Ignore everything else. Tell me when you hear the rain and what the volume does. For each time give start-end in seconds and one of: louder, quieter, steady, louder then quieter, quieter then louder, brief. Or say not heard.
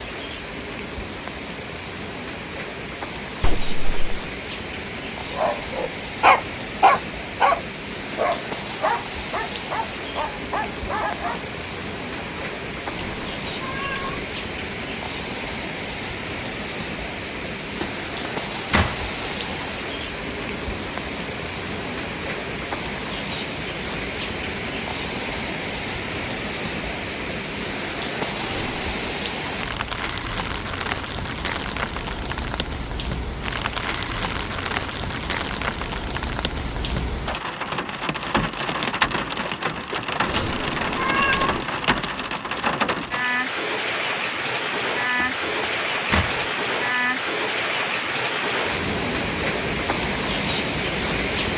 0.0-51.5 louder.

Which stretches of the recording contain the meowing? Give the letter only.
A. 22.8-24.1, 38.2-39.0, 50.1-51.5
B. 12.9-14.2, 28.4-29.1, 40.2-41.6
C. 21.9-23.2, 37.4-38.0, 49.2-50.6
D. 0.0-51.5
B.